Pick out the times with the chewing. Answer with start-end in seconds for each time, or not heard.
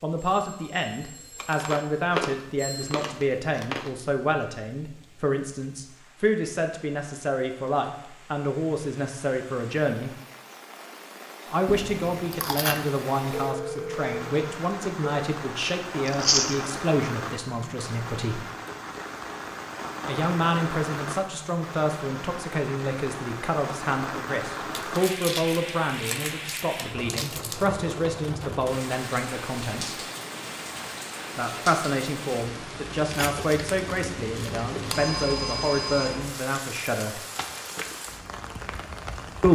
1.4-3.9, 11.7-12.9, 16.1-16.6, 24.8-27.7, 33.1-35.0.